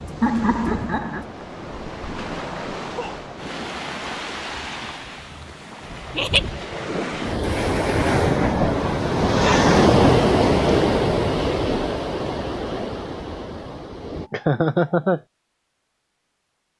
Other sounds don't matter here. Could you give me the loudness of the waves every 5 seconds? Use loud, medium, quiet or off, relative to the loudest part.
medium, loud, loud, off.